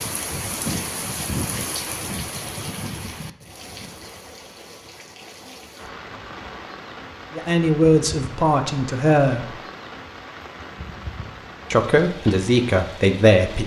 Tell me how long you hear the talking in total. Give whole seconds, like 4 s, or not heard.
4 s.